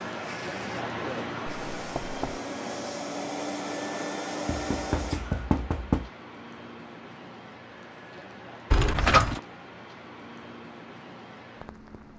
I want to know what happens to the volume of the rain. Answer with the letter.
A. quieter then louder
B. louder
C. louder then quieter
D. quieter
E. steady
D.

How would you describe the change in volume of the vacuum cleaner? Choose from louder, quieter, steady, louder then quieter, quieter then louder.
louder.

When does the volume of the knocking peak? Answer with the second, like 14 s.
9 s.